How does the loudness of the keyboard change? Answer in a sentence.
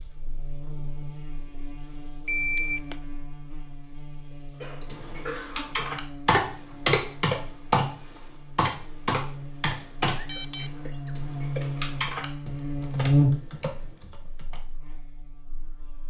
The loudness of the keyboard goes down.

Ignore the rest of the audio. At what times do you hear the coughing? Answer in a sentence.
The coughing can be heard from 4.5 to 6.0 s and from 10.2 to 11.7 s.